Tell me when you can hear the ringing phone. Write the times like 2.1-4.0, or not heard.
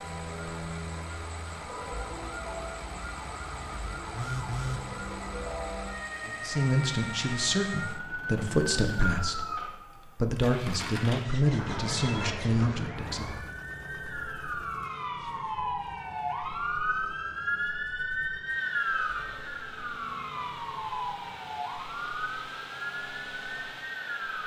4.1-4.8, 11.6-12.4, 19.1-19.6.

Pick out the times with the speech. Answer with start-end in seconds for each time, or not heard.
6.2-13.2.